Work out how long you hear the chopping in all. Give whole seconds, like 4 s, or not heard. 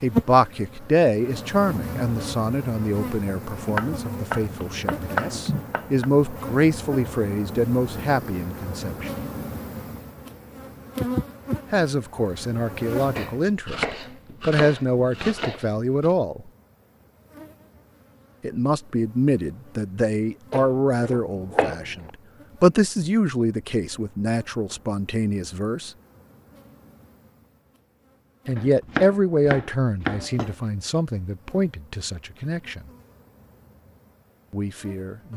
9 s.